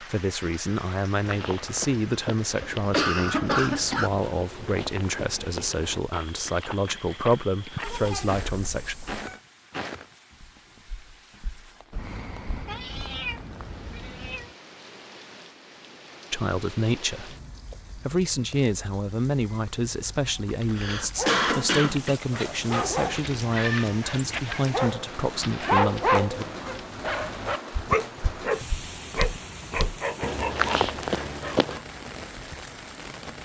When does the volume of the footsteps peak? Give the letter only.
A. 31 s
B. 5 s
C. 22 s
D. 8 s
A.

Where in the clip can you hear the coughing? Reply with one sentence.
The coughing can be heard from 2.6 to 4.1 s and from 20.4 to 22.1 s.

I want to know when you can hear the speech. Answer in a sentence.
The speech can be heard from 0.0 to 8.9 s, from 16.3 to 17.4 s and from 17.9 to 26.4 s.